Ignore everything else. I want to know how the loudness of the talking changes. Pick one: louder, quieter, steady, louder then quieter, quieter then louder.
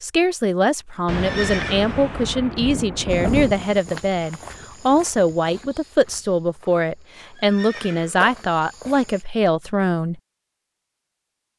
steady.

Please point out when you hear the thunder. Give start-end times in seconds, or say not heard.
1.1-3.8.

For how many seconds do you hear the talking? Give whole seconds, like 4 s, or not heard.
10 s.